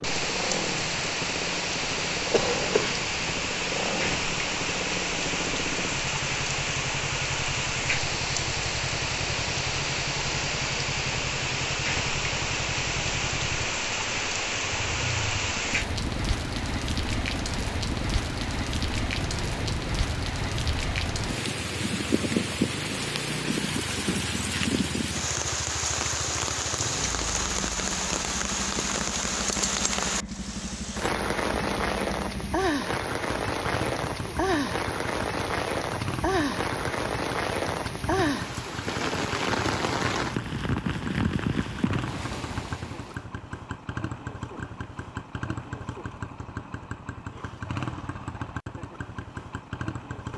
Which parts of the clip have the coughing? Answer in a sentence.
You can hear the coughing from 2.3 to 3.0 s.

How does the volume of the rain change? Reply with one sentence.
The loudness of the rain stays about the same.